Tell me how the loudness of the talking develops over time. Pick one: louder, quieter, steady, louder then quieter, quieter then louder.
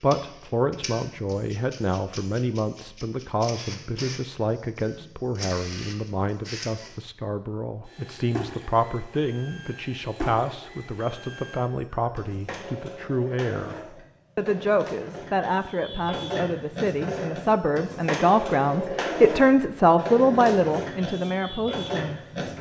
louder.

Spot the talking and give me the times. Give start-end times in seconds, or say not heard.
0.0-22.5.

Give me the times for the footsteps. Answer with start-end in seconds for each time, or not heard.
not heard.